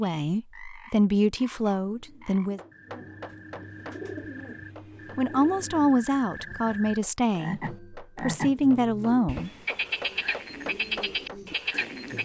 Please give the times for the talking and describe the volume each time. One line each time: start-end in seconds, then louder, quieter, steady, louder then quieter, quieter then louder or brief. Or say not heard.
0.0-2.6 brief
5.2-9.5 quieter then louder.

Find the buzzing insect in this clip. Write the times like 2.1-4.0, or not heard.
not heard.